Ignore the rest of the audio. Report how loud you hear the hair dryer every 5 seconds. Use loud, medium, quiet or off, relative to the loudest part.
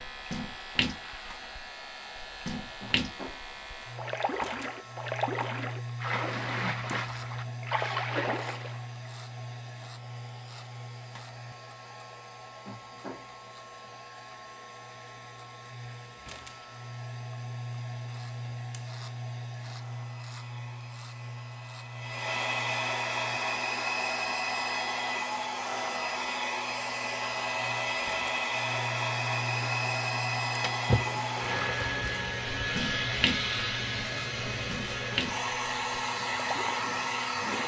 quiet, quiet, quiet, quiet, loud, loud, loud, loud.